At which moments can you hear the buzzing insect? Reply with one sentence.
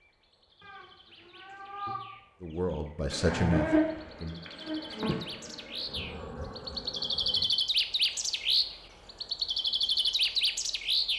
The buzzing insect can be heard from 3.1 to 7.5 s.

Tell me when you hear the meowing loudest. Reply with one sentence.
The loudest moment of the meowing is at 2 seconds.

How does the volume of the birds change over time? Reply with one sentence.
The loudness of the birds goes up.